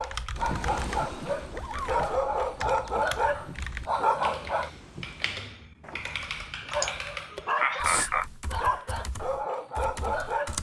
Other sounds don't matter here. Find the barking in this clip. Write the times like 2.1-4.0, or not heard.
0.0-4.7, 6.7-10.5.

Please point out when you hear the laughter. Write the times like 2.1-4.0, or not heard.
6.7-8.2.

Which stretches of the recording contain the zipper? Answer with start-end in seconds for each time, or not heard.
1.5-2.1, 5.8-6.3.